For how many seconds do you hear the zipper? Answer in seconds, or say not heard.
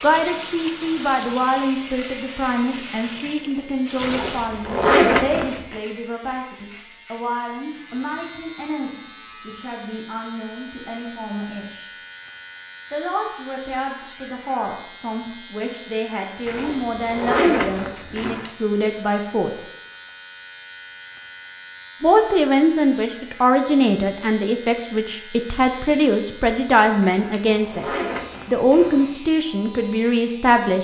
6 s.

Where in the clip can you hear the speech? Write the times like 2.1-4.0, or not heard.
0.0-11.9, 12.9-19.6, 22.0-27.9, 28.4-30.7.